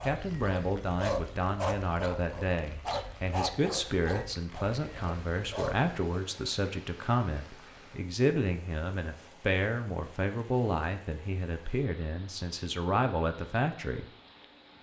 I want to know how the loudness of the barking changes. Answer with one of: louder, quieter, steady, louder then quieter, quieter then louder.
quieter.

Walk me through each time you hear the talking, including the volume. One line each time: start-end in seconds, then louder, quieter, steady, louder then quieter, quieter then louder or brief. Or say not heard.
0.0-14.1 steady.